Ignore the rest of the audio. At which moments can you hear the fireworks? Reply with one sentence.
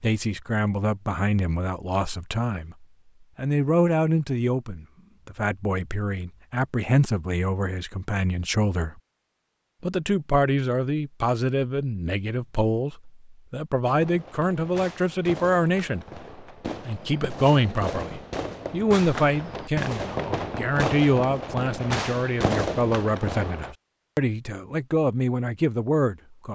The fireworks can be heard from 13.8 to 23.8 s.